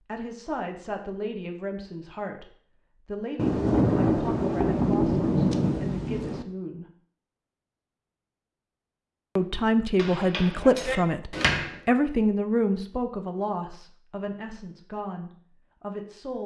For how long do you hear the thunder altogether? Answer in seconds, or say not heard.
3 s.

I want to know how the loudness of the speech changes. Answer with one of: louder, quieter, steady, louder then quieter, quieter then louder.
louder then quieter.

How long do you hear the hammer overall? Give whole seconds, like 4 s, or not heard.
2 s.